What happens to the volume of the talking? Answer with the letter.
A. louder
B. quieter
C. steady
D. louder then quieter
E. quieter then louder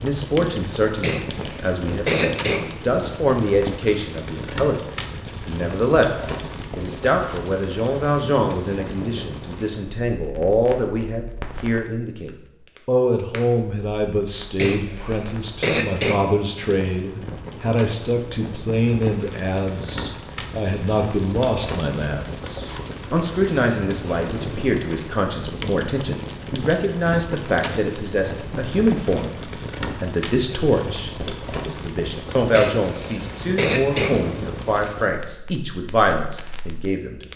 C.